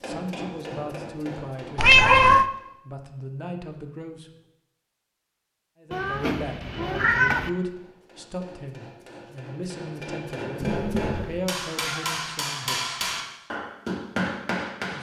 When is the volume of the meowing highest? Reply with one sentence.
The loudest moment of the meowing is at 2 seconds.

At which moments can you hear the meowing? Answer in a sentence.
You can hear the meowing from 1.8 to 2.5 s, from 5.9 to 7.5 s and from 10.6 to 12.2 s.